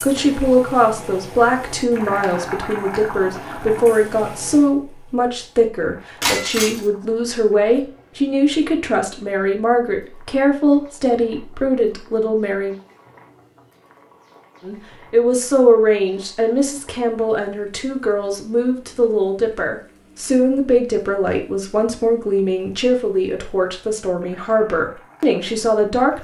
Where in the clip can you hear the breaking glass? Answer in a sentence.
You can hear the breaking glass from 6.2 to 6.8 s.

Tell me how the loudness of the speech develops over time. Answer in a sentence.
The loudness of the speech stays about the same.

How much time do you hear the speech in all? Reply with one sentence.
The speech can be heard for 24 seconds in total.